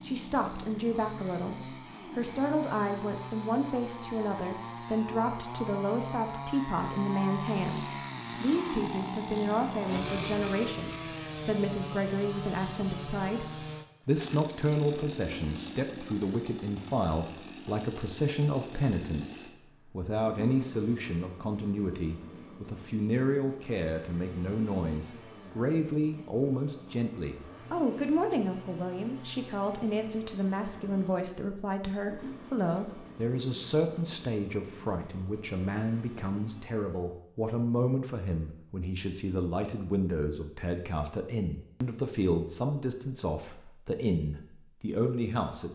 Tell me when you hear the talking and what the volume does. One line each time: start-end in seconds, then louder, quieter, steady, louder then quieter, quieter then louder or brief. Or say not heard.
0.0-45.6 steady.